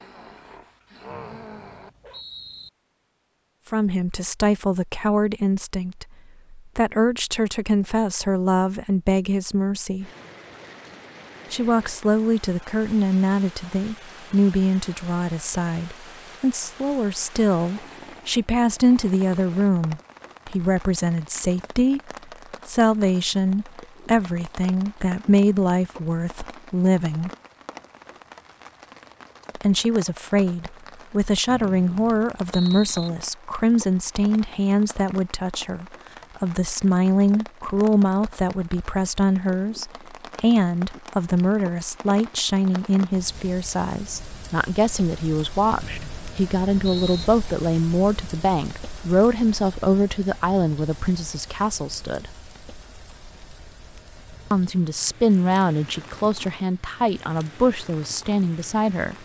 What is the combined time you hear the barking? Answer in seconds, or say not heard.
2 s.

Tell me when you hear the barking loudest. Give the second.
1 s.